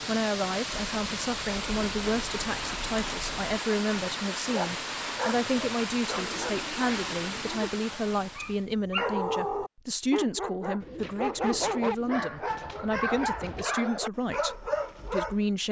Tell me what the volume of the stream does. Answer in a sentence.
The loudness of the stream stays about the same.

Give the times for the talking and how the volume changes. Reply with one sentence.
The talking can be heard from 0.1 to 15.6 s, at a steady volume.